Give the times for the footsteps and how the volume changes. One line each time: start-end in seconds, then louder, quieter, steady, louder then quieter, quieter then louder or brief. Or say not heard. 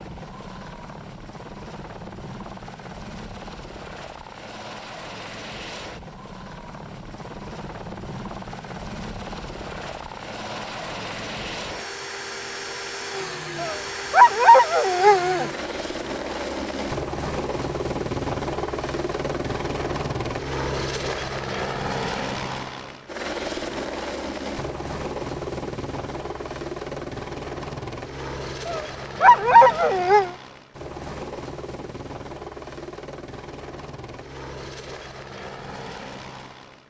not heard.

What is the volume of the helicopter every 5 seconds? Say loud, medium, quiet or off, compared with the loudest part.
medium, medium, loud, loud, loud, loud, medium, medium.